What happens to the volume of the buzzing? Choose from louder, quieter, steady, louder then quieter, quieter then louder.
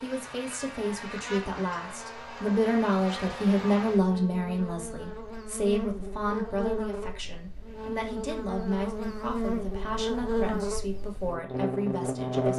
louder.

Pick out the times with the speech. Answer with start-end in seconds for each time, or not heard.
0.0-12.5.